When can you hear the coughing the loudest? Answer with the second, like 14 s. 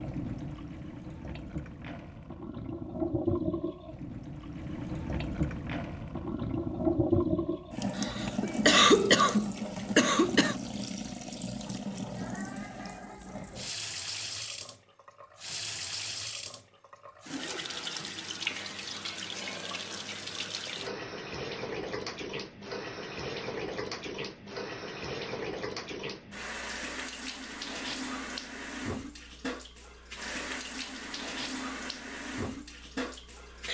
9 s.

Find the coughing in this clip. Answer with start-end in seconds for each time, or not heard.
8.0-10.6.